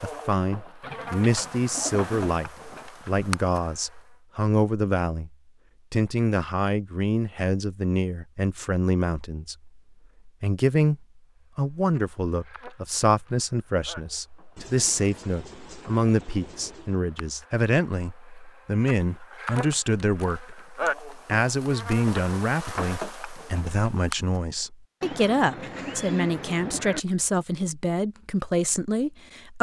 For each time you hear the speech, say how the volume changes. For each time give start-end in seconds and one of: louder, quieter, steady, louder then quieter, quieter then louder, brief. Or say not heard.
0.0-29.5 steady.